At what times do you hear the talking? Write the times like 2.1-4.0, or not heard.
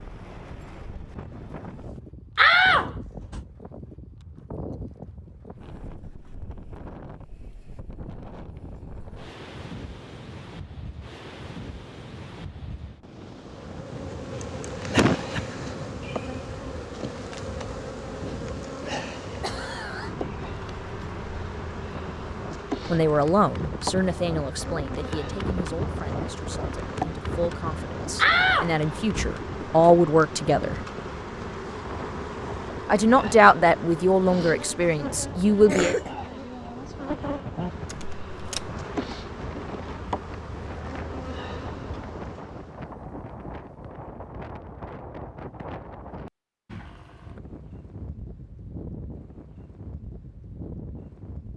22.9-30.8, 32.9-36.0.